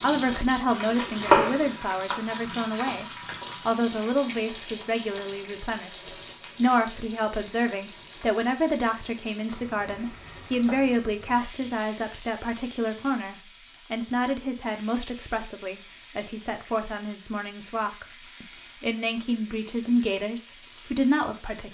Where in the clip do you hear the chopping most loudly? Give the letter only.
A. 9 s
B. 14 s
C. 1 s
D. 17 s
C.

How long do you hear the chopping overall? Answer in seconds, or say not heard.
2 s.